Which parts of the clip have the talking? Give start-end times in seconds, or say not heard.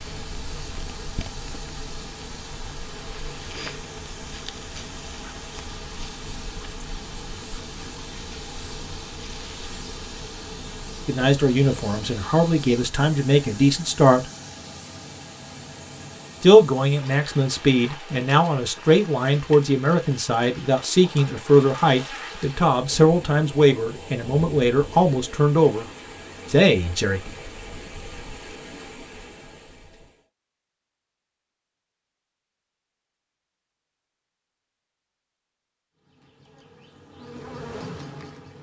11.1-14.2, 16.4-25.9, 26.5-27.2.